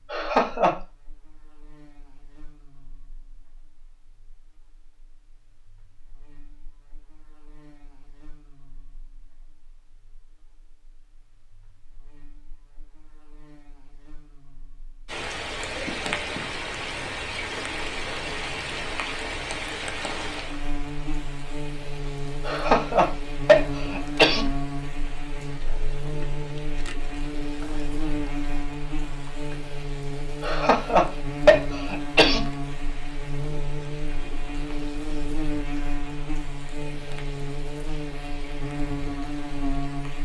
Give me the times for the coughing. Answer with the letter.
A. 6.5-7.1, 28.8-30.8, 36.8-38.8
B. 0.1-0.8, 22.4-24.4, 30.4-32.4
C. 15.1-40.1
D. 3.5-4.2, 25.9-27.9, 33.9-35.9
B.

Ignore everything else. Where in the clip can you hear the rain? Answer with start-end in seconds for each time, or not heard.
15.1-40.1.